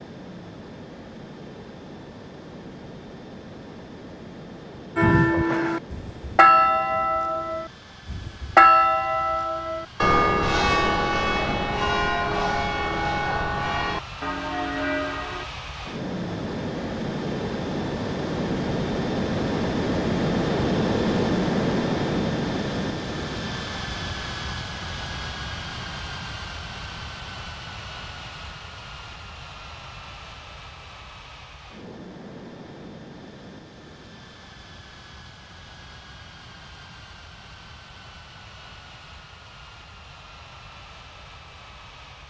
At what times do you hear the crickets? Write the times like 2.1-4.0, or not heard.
not heard.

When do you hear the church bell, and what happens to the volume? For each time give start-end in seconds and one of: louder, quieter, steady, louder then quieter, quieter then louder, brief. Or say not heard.
5.0-15.4 quieter.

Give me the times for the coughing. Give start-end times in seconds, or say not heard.
not heard.